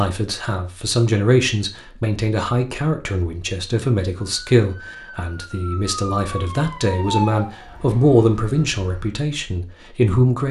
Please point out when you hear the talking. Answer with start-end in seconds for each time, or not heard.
0.0-10.4.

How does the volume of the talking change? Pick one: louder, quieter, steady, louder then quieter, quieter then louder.
steady.